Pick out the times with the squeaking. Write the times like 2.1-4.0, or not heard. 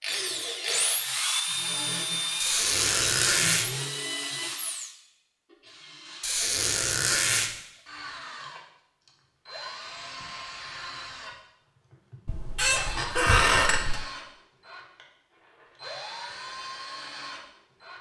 2.4-3.6, 6.2-7.5, 12.2-14.0.